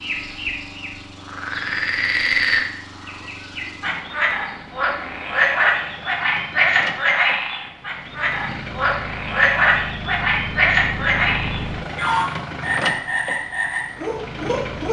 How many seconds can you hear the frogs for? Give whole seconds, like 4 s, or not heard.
15 s.